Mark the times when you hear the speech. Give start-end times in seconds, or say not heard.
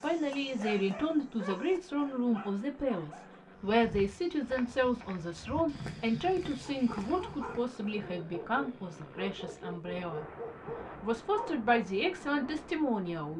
0.0-13.3.